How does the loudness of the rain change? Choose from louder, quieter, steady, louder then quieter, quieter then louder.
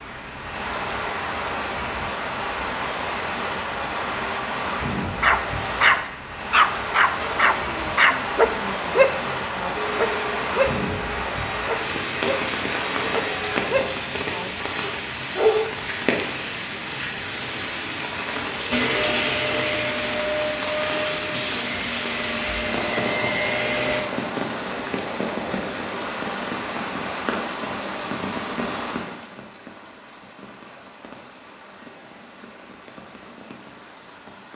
quieter.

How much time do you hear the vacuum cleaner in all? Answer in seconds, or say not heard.
12 s.